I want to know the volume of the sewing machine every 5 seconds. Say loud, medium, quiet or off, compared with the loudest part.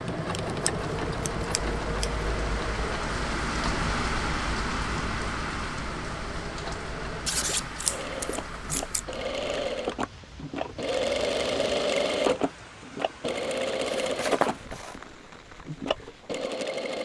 medium, medium, loud, medium.